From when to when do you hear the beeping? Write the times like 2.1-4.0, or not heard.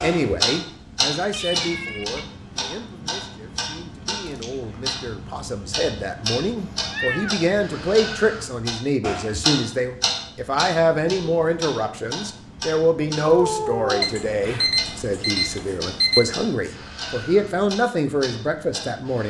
14.0-16.4.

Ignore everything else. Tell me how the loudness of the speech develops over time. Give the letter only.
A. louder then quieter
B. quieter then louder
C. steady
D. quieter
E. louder
E.